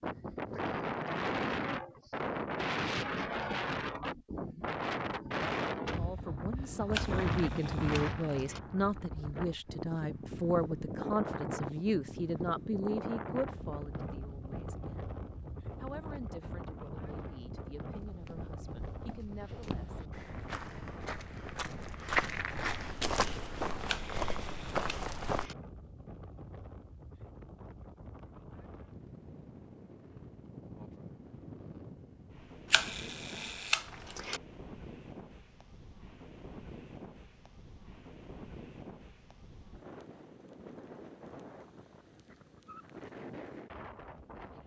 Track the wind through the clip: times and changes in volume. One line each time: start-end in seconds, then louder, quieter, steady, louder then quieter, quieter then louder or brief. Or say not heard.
0.0-44.6 quieter.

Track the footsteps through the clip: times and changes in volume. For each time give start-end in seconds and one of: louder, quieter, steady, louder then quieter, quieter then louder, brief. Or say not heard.
17.9-25.5 louder.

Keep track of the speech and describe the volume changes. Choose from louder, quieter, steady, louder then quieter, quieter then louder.
quieter.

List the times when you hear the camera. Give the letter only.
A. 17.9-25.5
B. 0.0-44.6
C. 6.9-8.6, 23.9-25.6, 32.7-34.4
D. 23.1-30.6
C.